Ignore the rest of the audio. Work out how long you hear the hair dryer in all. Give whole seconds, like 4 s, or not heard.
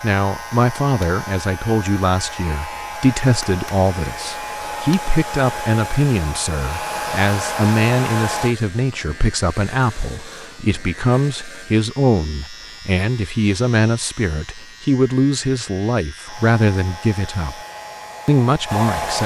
11 s.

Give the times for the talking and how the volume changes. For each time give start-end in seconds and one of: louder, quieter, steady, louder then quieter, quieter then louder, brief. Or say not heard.
0.0-17.6 steady
18.2-19.2 brief.